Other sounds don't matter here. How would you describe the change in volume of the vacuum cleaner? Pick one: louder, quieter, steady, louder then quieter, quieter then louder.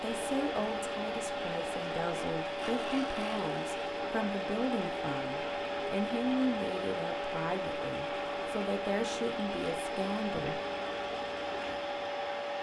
steady.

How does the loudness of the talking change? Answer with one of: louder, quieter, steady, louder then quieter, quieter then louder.
steady.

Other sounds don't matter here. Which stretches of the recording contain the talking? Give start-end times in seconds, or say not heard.
0.0-10.6.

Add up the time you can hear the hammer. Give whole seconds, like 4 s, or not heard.
not heard.